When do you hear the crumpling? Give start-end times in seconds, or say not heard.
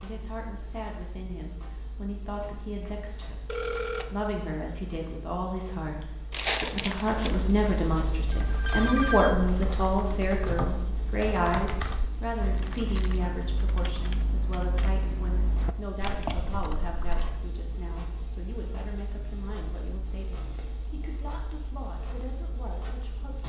6.3-7.5, 12.2-13.2.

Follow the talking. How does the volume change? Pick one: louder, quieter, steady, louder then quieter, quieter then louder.
louder then quieter.